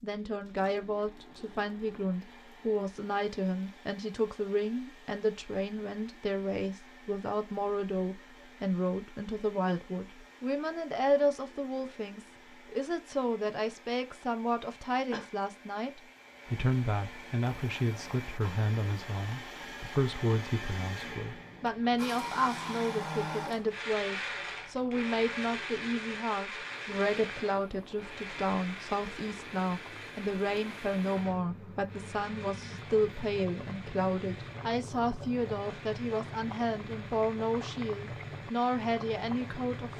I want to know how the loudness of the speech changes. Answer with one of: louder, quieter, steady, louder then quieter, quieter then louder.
steady.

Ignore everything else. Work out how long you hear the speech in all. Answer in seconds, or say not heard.
40 s.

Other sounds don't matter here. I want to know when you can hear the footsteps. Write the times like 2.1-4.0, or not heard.
not heard.